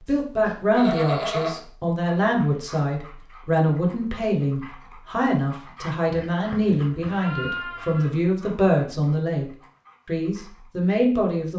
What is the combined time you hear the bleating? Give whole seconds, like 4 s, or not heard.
3 s.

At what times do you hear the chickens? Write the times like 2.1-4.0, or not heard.
not heard.